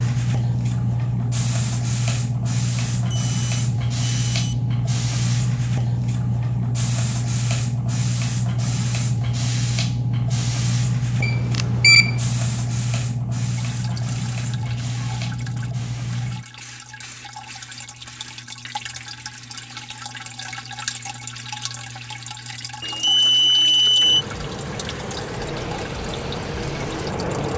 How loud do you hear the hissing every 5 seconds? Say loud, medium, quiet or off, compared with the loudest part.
loud, loud, loud, medium, quiet, medium.